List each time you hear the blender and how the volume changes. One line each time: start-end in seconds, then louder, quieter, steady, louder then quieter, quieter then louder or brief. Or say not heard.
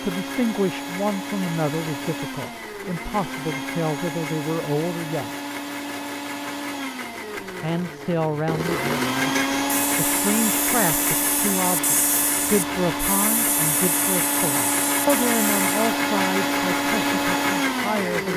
0.0-18.3 louder.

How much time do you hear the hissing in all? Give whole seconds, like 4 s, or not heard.
6 s.